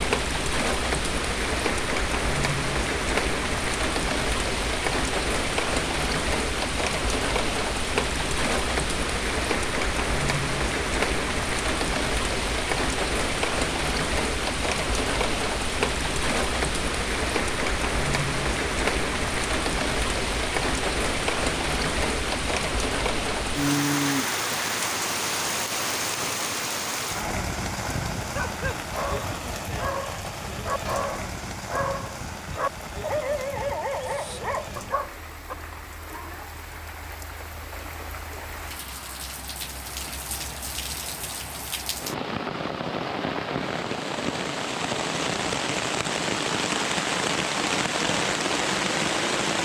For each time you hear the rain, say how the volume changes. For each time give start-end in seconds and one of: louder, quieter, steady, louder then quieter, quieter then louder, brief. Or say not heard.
0.0-49.6 quieter then louder.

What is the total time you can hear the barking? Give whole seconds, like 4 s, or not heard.
7 s.